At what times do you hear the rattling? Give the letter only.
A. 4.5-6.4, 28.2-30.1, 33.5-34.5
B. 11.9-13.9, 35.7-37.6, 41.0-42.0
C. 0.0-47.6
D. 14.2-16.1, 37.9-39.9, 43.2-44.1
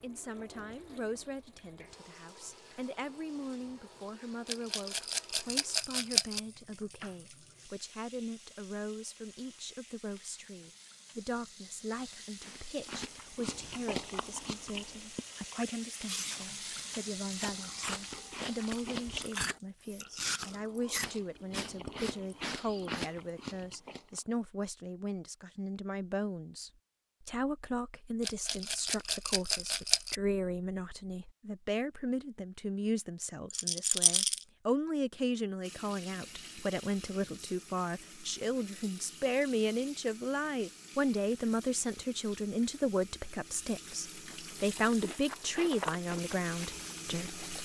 A.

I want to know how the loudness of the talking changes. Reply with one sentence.
The loudness of the talking goes up.